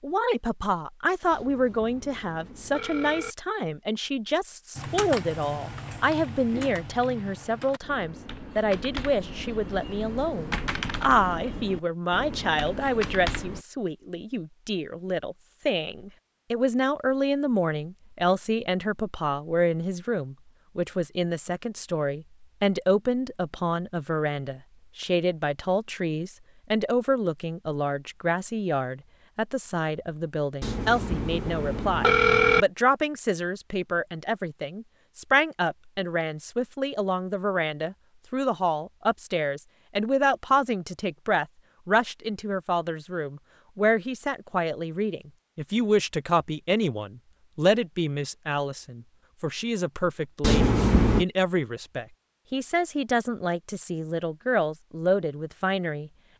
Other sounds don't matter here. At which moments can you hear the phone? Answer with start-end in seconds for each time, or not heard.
1.3-3.4, 30.6-32.6, 50.4-51.2.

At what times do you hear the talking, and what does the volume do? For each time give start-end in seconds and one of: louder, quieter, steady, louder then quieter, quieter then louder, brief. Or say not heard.
0.0-56.3 steady.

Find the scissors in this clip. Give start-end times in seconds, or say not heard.
not heard.